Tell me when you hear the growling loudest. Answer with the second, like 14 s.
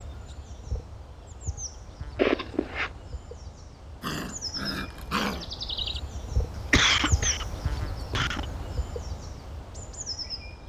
5 s.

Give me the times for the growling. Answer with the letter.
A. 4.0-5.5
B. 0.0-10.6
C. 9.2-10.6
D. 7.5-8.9
A.